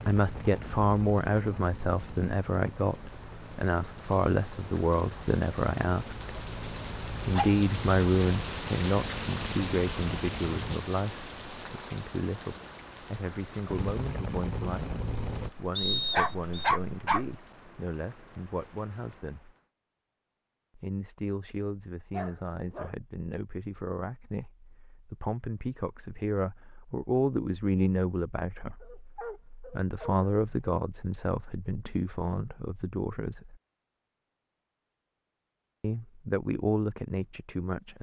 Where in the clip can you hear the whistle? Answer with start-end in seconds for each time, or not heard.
15.8-16.7.